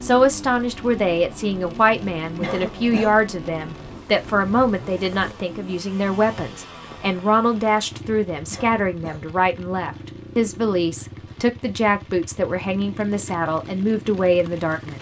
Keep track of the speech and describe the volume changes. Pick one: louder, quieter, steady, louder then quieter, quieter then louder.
steady.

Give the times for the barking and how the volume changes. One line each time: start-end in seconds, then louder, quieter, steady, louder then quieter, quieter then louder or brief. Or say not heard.
not heard.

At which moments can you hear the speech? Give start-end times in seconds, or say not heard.
0.0-14.9.